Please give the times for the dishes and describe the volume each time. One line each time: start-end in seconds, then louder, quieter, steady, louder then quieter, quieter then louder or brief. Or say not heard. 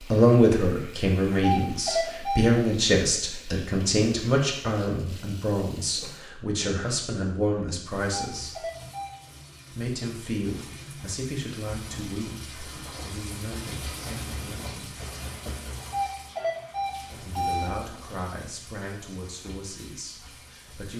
not heard.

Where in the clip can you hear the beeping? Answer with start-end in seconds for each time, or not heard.
1.3-2.5, 8.0-9.2, 15.8-17.8.